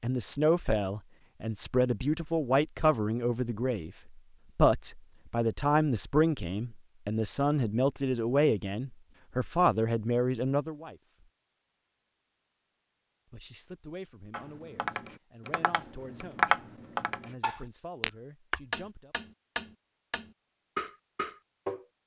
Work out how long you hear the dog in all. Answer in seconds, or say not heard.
not heard.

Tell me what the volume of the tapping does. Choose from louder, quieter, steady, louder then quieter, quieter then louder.
louder then quieter.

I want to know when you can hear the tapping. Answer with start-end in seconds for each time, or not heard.
14.3-21.9.